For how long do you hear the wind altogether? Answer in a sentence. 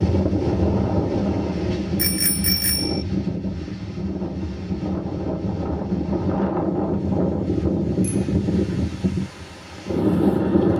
The wind can be heard for 11 seconds in total.